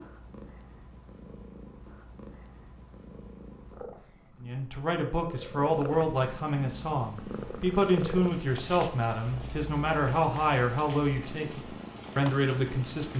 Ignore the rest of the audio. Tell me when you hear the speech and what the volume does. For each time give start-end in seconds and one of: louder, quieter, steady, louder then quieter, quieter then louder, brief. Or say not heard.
4.4-13.1 steady.